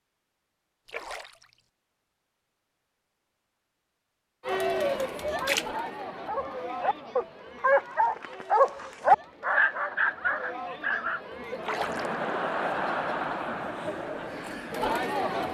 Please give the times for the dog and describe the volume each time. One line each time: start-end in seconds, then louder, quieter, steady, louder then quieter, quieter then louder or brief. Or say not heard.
5.4-11.2 louder then quieter.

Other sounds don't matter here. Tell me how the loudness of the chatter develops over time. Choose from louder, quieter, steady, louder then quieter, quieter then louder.
quieter then louder.